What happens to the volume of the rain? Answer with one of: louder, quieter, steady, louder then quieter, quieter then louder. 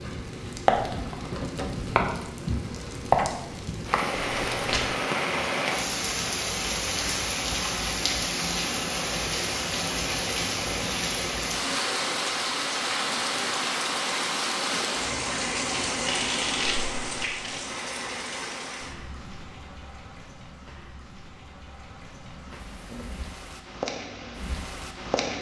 quieter.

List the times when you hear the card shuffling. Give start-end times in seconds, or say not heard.
4.2-4.9, 16.1-17.6.